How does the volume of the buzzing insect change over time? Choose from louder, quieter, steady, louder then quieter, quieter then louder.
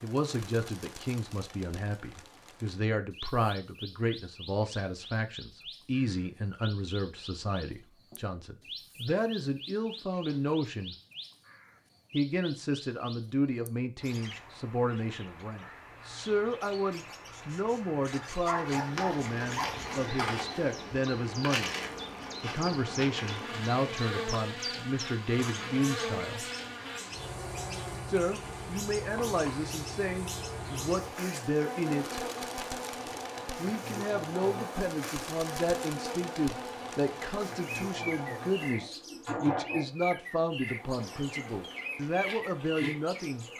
steady.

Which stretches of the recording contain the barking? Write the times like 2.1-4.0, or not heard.
18.1-20.1.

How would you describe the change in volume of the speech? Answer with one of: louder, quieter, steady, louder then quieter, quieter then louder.
steady.